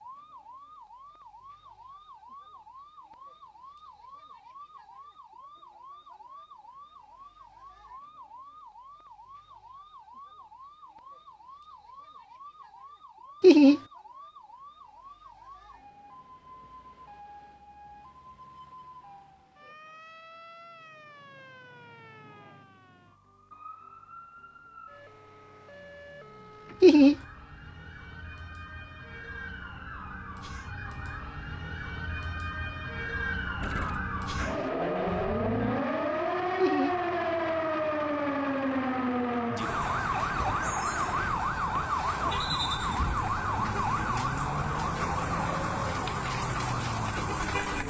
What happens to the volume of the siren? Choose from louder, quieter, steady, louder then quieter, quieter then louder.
louder.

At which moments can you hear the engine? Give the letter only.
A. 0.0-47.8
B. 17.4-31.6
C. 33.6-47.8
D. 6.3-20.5
C.